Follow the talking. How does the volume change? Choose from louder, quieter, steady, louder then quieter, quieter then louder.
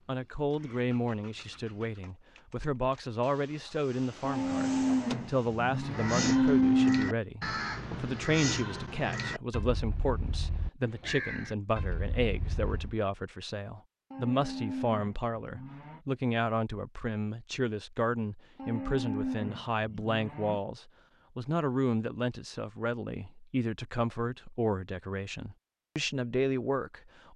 steady.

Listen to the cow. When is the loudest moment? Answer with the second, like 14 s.
7 s.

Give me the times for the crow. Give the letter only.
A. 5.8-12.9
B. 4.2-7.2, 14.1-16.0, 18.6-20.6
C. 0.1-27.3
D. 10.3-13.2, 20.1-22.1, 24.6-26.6
A.